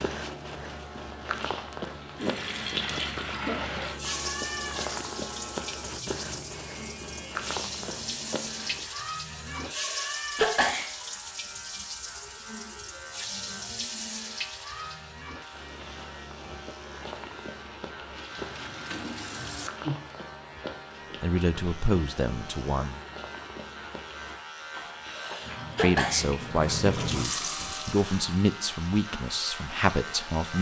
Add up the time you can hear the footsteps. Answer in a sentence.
You can hear the footsteps for 19 seconds altogether.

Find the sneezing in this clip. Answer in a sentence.
You can hear the sneezing from 9.7 to 10.9 s and from 25.1 to 26.3 s.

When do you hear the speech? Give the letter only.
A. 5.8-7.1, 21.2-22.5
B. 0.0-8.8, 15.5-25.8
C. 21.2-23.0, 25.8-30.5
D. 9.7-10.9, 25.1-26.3
C.